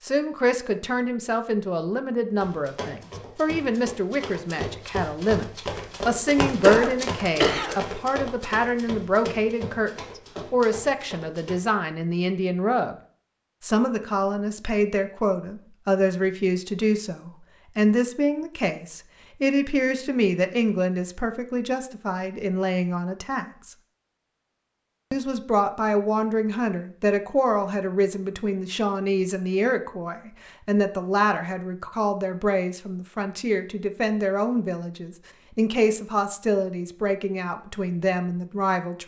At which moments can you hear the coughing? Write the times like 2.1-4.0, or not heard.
6.2-7.8.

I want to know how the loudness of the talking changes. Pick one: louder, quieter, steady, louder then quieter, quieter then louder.
steady.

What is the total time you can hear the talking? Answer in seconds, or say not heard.
37 s.